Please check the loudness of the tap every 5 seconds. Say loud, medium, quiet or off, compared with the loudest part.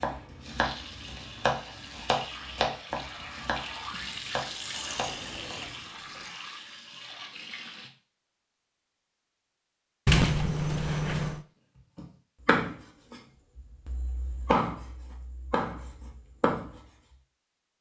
loud, loud, off, off.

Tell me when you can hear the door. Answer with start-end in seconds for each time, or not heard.
4.7-6.3, 10.1-11.4.